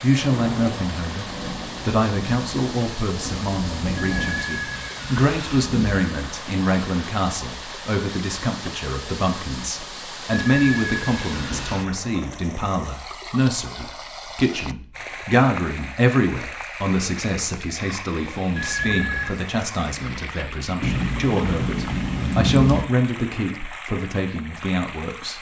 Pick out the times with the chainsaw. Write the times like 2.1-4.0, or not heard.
not heard.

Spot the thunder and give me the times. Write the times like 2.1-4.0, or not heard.
0.1-4.5, 20.8-22.9.